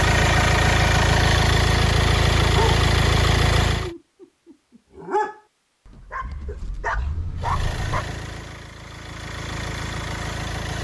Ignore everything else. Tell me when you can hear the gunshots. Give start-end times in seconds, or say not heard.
not heard.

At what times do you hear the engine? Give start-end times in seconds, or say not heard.
0.0-3.9, 7.3-10.7.